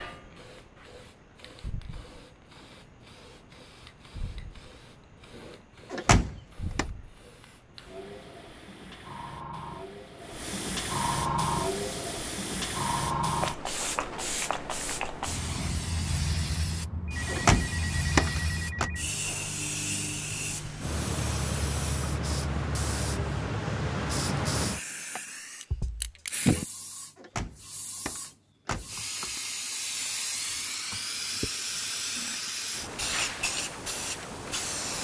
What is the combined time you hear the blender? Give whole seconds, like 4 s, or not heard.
not heard.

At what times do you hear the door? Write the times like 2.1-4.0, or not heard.
5.9-6.8, 17.2-18.9, 27.1-29.4.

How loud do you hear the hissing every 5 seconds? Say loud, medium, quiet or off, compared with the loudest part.
quiet, quiet, loud, loud, loud, loud, loud.